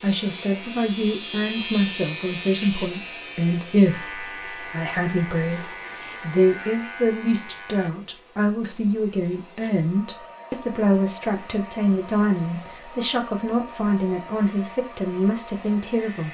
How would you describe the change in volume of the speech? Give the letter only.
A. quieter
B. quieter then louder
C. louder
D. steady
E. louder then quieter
D.